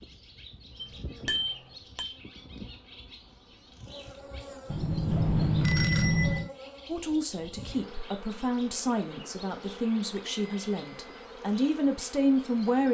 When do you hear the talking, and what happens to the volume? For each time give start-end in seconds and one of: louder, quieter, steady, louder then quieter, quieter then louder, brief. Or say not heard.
6.8-12.8 louder.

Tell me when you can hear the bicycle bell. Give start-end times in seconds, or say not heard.
0.8-2.1, 4.7-6.5, 10.1-11.2.